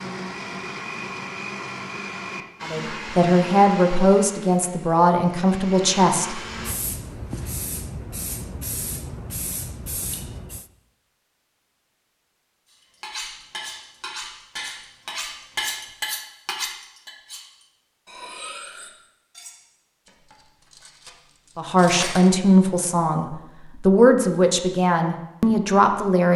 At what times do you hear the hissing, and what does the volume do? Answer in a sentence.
You can hear the hissing from 6.4 to 10.7 s, at a steady volume.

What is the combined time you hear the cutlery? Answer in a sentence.
You can hear the cutlery for 10 seconds altogether.